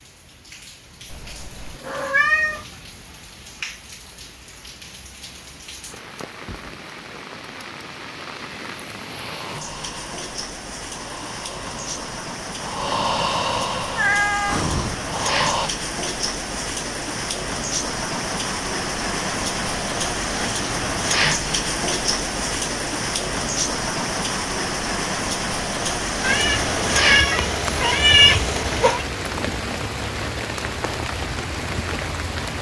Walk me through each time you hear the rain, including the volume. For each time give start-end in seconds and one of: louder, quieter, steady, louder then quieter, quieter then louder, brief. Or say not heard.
0.0-32.5 louder.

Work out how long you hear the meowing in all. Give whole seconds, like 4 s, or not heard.
5 s.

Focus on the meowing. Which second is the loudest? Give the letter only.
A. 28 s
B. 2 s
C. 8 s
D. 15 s
A.